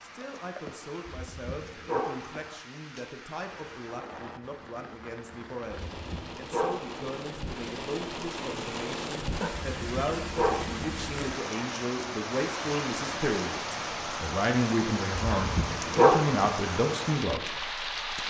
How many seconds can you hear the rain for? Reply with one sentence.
The rain can be heard for 18 seconds in total.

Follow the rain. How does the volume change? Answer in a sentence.
The loudness of the rain goes up.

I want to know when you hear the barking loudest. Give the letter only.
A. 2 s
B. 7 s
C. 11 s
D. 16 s
D.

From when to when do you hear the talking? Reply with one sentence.
You can hear the talking from 0.0 to 18.2 s.